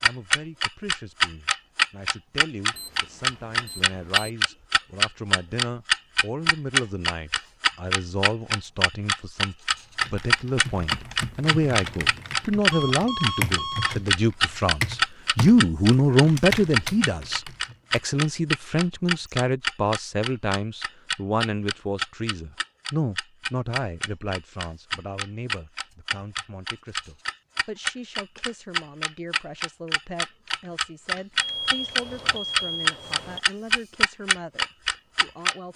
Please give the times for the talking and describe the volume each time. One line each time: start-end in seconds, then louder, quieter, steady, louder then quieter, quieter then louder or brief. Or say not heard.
0.0-35.7 louder then quieter.